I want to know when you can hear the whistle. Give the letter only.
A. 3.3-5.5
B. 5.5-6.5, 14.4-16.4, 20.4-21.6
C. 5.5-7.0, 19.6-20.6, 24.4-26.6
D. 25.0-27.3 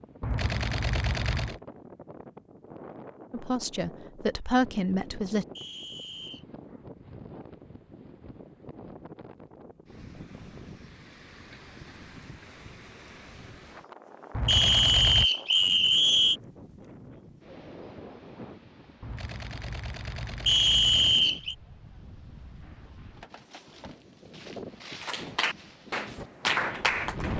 B.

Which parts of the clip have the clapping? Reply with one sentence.
You can hear the clapping from 25.0 to 27.3 s.